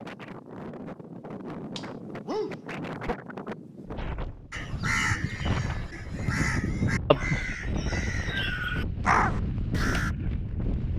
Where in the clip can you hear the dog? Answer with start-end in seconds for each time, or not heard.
2.2-3.1.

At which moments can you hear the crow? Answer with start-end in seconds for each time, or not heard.
4.5-10.1.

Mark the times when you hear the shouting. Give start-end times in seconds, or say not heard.
not heard.